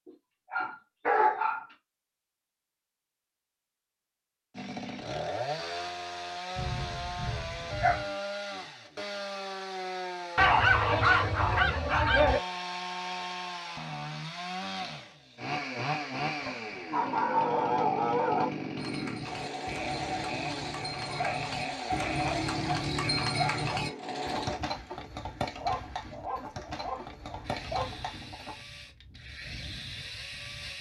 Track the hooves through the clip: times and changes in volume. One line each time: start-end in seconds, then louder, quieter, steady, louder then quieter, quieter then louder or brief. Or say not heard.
18.8-28.6 louder then quieter.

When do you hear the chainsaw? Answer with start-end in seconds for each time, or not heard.
4.5-24.6, 27.4-30.7.